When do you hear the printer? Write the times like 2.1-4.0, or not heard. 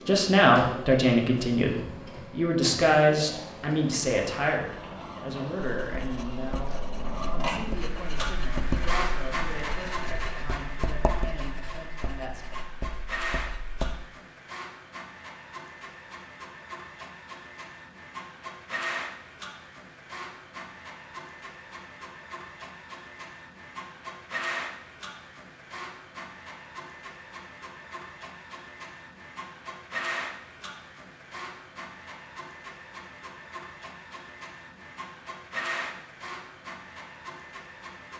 0.0-38.1.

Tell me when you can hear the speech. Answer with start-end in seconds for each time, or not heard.
0.1-12.4.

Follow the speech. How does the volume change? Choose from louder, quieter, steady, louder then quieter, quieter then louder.
quieter.